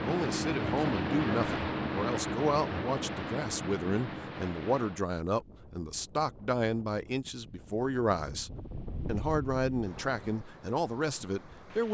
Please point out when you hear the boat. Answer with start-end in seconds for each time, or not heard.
0.0-5.0.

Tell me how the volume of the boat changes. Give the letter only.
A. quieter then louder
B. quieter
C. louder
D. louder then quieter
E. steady
B.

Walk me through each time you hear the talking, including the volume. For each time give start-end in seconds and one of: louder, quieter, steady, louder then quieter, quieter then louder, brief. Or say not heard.
0.0-11.8 steady.